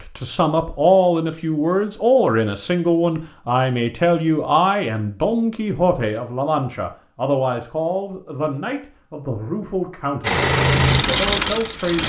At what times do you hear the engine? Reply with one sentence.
You can hear the engine from 10.2 to 12.0 s.